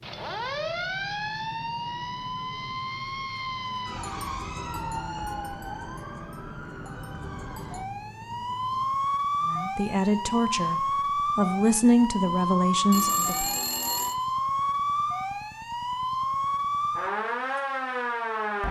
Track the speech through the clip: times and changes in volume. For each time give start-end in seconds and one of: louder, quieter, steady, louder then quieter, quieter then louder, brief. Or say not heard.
9.4-13.4 quieter then louder.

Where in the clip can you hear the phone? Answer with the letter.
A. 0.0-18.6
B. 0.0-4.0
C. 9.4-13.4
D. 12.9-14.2
D.